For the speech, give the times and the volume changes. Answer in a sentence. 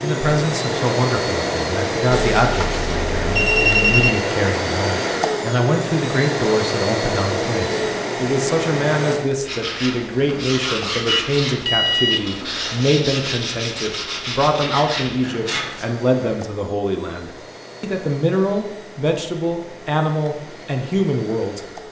The speech can be heard from 0.0 to 21.6 s, at a steady volume.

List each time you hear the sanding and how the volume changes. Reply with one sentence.
You can hear the sanding from 9.4 to 15.9 s, at a steady volume.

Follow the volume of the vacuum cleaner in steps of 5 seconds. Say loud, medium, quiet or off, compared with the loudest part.
loud, loud, quiet, quiet, quiet.